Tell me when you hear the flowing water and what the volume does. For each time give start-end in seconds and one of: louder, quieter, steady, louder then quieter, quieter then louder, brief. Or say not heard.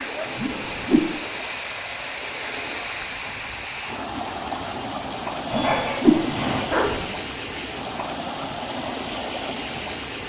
0.0-10.2 steady.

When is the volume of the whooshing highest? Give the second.
6 s.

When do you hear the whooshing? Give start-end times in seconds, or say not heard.
0.3-1.1, 5.5-6.2.